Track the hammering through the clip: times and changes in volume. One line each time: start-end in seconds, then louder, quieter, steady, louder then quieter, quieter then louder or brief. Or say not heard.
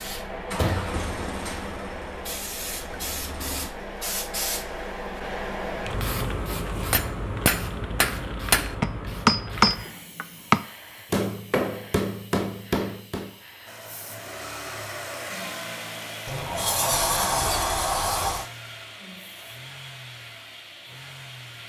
6.7-13.3 louder then quieter.